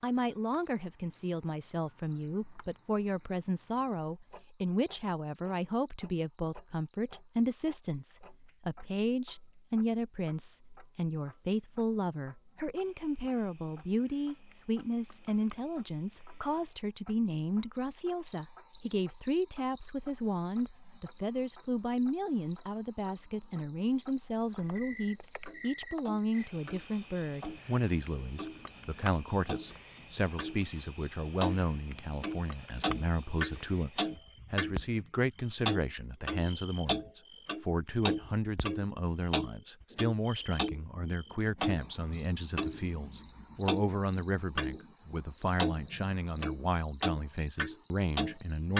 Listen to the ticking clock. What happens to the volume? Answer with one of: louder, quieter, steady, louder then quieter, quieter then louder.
louder.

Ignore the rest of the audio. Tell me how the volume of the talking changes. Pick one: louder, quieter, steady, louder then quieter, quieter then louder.
steady.